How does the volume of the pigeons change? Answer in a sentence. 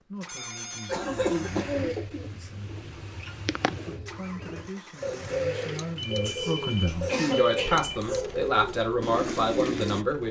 The volume of the pigeons goes up.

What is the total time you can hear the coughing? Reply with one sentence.
You can hear the coughing for 3 seconds altogether.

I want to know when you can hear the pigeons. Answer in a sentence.
The pigeons can be heard from 1.6 to 10.1 s.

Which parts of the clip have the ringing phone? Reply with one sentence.
The ringing phone can be heard from 0.2 to 1.6 s and from 6.0 to 8.0 s.